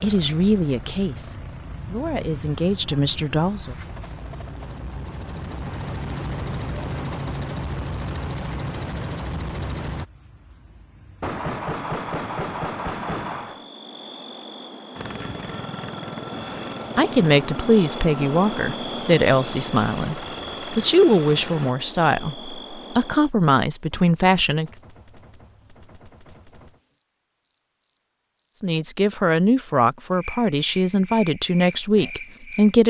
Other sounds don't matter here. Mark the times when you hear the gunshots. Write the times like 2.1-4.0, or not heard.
11.2-13.7, 23.9-26.8.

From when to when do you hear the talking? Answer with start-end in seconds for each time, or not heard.
0.0-3.8, 16.9-24.7, 28.6-32.8.